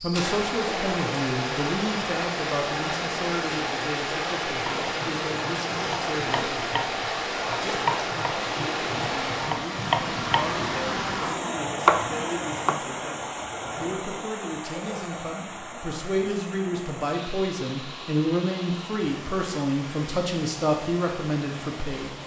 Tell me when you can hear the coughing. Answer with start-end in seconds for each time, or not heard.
not heard.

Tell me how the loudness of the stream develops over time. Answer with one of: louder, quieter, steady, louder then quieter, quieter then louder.
quieter.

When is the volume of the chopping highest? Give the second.
12 s.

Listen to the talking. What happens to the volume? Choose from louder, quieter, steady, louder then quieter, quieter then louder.
quieter then louder.